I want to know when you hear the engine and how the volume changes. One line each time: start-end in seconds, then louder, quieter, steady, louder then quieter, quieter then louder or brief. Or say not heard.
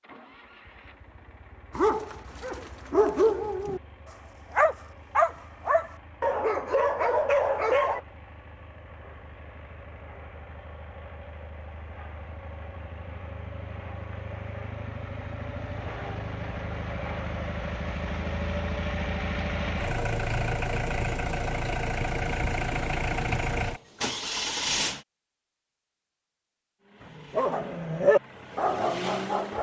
0.0-25.1 louder
26.8-29.5 brief.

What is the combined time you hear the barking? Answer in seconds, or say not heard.
8 s.